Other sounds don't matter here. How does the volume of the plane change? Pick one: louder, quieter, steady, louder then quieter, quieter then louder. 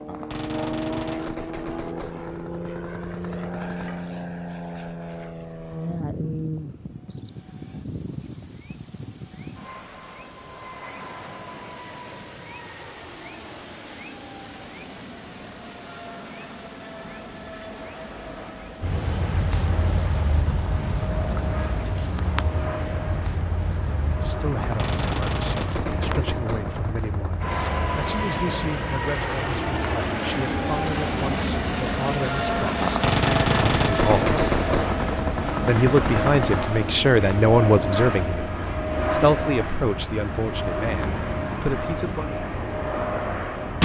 quieter then louder.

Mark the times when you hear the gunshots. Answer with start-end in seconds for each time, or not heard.
0.1-4.0, 24.6-27.2, 32.8-36.6.